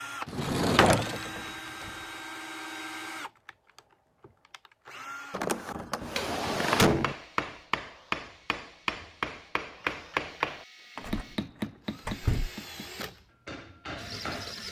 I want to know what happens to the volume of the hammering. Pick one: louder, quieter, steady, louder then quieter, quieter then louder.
quieter.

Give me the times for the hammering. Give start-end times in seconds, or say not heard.
6.2-14.6.